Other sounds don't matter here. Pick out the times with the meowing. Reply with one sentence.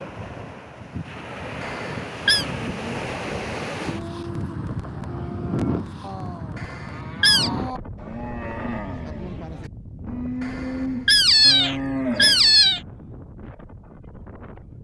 The meowing can be heard from 1.6 to 2.5 s, from 6.5 to 7.5 s and from 10.4 to 12.8 s.